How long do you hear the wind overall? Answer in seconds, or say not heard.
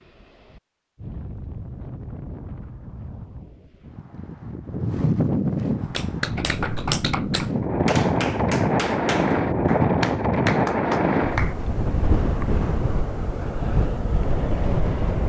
15 s.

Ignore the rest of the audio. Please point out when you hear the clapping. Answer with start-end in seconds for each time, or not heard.
5.8-11.6.